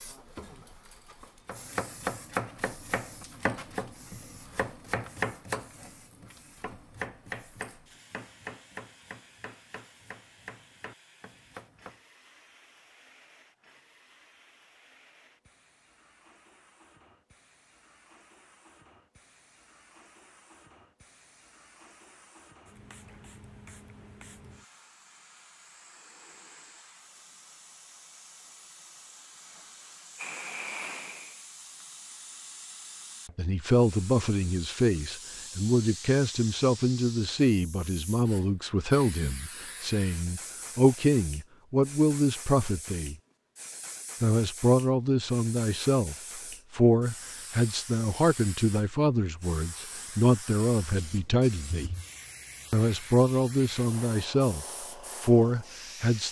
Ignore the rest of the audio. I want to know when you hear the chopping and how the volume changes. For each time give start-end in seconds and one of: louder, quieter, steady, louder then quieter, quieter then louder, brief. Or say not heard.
1.4-12.0 quieter.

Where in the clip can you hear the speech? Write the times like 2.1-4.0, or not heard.
33.4-43.1, 44.2-51.9, 52.7-56.2.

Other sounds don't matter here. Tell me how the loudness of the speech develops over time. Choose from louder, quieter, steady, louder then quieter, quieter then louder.
steady.